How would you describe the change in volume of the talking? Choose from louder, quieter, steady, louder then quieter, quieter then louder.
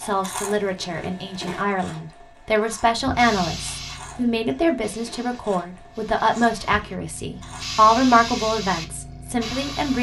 louder.